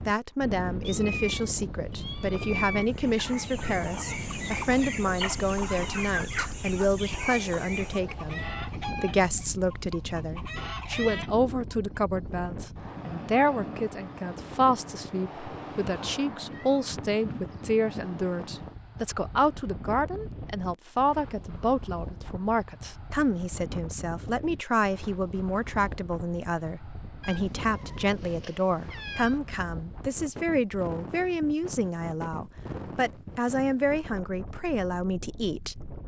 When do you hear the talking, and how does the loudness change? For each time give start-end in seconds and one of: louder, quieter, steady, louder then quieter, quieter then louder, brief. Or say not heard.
0.1-35.9 steady.